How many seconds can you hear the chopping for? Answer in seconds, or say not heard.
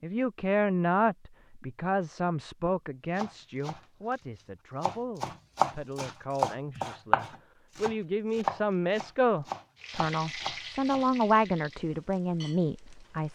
7 s.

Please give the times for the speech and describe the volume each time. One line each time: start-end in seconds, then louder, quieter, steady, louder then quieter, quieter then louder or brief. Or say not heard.
0.0-13.3 quieter then louder.